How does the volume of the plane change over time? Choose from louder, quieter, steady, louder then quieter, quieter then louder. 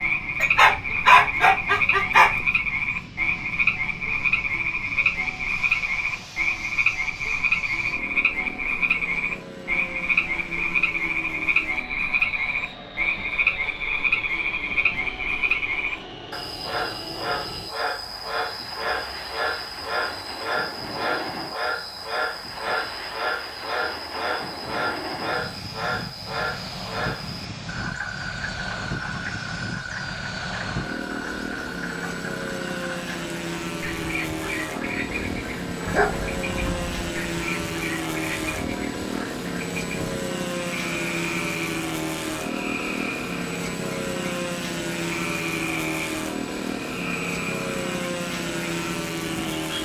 louder.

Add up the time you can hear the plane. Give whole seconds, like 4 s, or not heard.
50 s.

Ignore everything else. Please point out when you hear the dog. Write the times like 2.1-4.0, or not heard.
0.4-2.4, 35.9-37.1.